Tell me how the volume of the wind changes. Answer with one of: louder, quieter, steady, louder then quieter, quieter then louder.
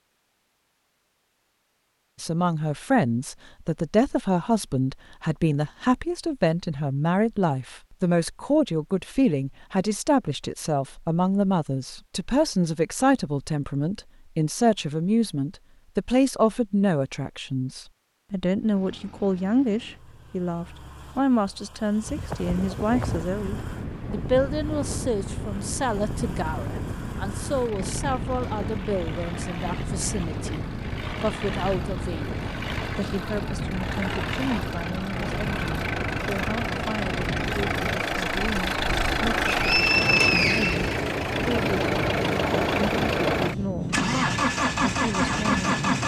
steady.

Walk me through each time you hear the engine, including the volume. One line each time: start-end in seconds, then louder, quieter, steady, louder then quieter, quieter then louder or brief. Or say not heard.
18.6-46.0 louder.